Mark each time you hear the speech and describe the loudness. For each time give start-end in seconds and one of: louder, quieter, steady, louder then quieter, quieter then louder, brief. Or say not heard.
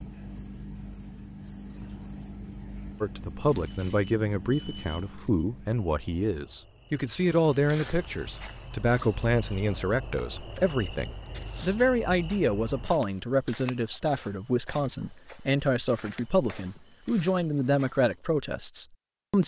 3.0-19.4 steady.